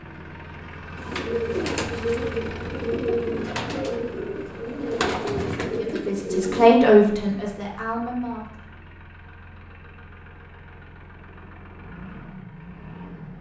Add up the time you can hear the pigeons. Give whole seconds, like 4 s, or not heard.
6 s.